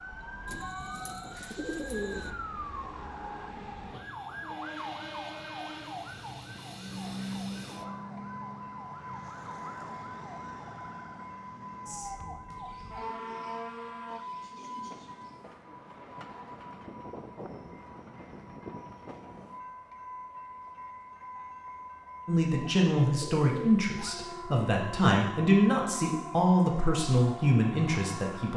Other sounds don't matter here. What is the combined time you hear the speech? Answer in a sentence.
The speech can be heard for 6 seconds in total.